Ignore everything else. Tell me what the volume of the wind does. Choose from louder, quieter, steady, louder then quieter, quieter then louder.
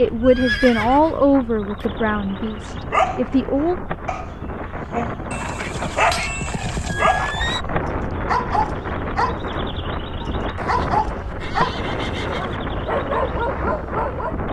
louder.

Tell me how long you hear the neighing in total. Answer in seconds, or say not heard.
6 s.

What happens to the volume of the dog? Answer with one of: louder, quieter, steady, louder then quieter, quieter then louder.
steady.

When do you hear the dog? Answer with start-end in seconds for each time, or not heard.
2.6-9.4, 10.2-14.3.